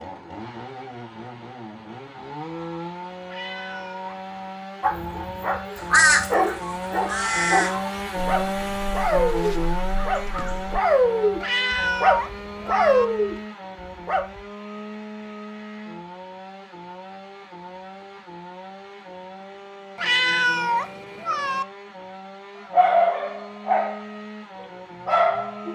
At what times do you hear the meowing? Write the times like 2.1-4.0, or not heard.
3.2-4.2, 11.4-13.1, 19.9-21.6.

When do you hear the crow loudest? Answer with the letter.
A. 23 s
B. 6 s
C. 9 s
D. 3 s
B.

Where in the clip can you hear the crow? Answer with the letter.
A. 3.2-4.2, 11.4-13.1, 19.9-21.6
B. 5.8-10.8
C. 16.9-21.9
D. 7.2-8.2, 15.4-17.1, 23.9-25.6
B.